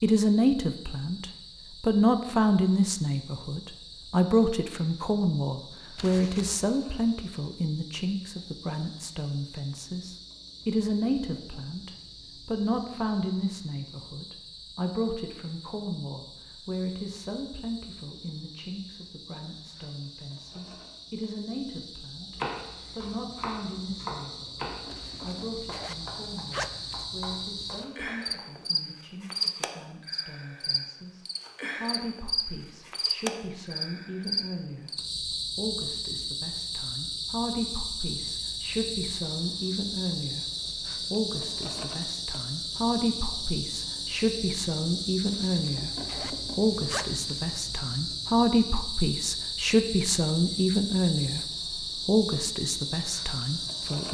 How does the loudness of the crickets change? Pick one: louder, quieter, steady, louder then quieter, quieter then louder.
louder.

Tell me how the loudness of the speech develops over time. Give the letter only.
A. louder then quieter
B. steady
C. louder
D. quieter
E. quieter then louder
E.